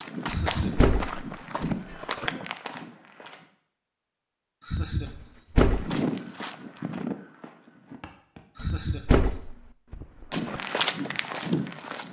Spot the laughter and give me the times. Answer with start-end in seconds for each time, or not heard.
0.2-0.9, 4.6-5.5, 8.6-9.4.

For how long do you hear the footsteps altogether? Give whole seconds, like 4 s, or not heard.
8 s.